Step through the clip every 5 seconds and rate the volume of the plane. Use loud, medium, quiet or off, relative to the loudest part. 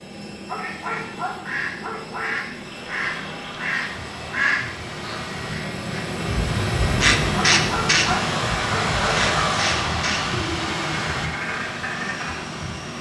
medium, loud, medium.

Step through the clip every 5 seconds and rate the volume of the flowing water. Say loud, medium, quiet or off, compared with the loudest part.
medium, loud, loud.